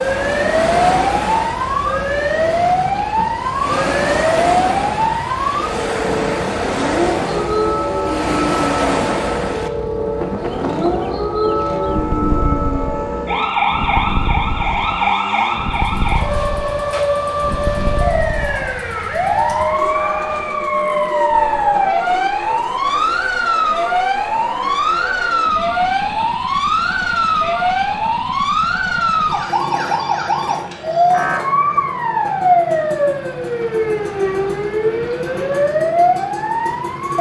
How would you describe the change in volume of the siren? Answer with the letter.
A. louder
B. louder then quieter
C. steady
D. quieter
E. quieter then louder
C.